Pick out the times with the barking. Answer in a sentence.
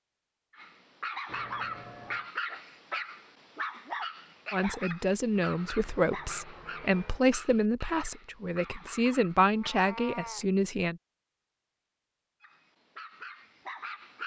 You can hear the barking from 0.5 to 9.8 s and from 12.4 to 14.2 s.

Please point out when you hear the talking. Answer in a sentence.
You can hear the talking from 4.5 to 11.0 s.